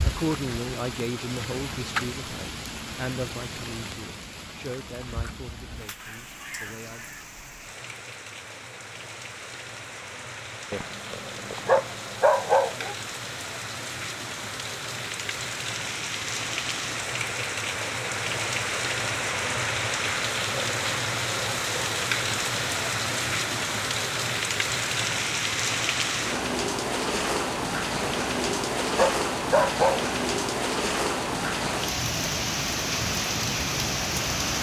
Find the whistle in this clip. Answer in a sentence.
The whistle can't be heard in this clip.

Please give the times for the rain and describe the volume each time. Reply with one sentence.
The rain can be heard from 0.0 to 34.5 s, getting louder.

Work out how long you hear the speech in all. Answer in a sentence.
The speech can be heard for 7 seconds in total.